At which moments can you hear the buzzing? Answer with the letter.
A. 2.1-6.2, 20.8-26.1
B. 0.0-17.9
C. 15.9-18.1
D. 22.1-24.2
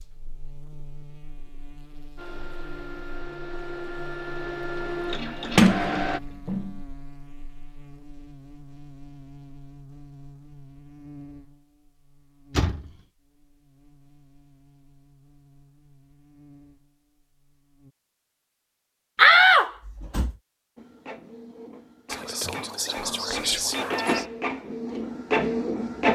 B.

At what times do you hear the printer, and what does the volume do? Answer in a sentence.
You can hear the printer from 2.1 to 6.2 s, getting louder; and from 20.8 to 26.1 s, getting louder.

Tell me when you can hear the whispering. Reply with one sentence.
You can hear the whispering from 22.1 to 24.2 s.